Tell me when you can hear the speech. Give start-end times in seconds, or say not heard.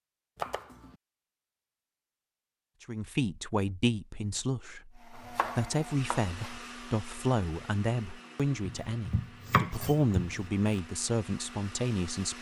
2.8-12.3.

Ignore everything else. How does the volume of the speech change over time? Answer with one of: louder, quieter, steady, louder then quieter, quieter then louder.
steady.